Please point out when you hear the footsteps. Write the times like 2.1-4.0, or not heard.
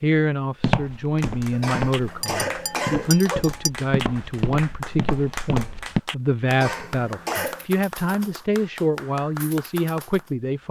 0.6-6.0.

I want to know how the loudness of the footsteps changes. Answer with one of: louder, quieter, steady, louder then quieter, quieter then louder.
quieter then louder.